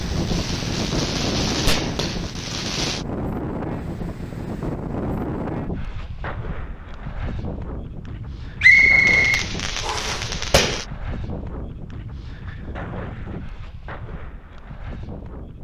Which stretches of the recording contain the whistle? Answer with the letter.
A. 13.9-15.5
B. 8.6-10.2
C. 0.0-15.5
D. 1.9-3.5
B.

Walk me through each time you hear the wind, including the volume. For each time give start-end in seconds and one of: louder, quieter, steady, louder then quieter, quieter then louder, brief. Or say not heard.
0.0-15.5 quieter.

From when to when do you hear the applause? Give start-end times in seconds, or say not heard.
not heard.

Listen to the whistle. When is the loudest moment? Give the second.
9 s.